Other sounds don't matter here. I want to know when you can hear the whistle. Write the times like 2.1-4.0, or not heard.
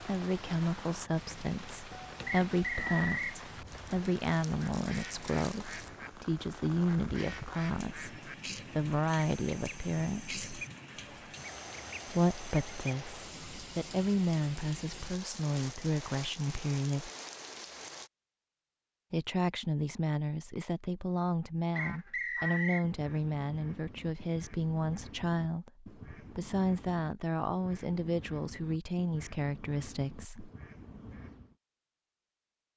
2.2-3.4, 21.8-22.9.